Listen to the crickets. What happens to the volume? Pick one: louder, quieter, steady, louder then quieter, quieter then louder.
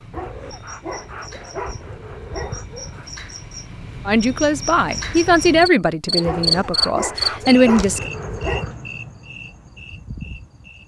louder then quieter.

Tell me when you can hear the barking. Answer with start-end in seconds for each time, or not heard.
0.1-3.1, 6.2-8.8.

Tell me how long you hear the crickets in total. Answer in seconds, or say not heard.
11 s.